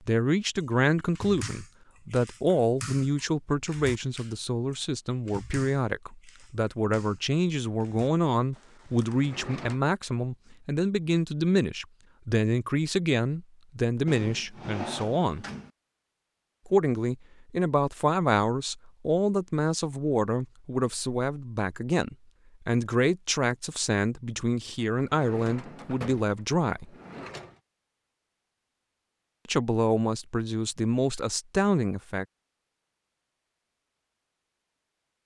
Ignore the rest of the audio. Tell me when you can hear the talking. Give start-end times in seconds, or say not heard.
0.1-15.4, 16.6-26.9, 29.4-32.2.